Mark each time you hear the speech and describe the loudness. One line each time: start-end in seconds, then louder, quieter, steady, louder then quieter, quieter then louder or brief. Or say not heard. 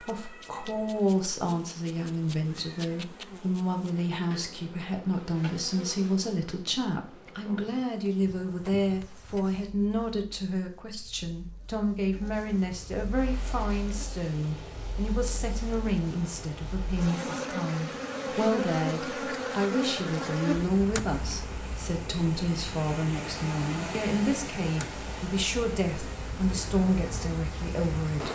0.0-28.3 steady.